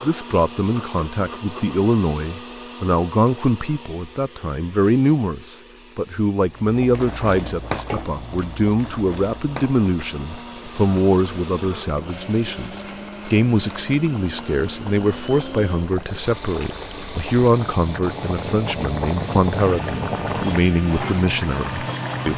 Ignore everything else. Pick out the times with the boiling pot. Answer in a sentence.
The boiling pot can be heard from 6.5 to 22.3 s.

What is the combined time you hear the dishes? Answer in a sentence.
You can't hear the dishes here.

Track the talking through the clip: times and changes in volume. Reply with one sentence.
The talking can be heard from 0.0 to 22.3 s, at a steady volume.